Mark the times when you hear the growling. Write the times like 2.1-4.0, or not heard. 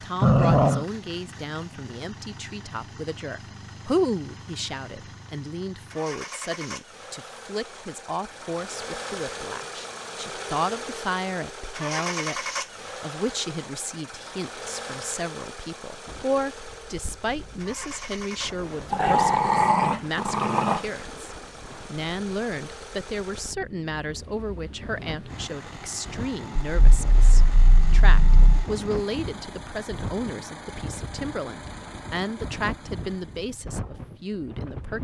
0.2-0.8, 18.9-20.8, 26.7-28.6.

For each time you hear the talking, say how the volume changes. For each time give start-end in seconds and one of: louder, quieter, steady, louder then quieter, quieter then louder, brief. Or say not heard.
0.0-34.9 steady.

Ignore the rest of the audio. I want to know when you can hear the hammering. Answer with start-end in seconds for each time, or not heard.
not heard.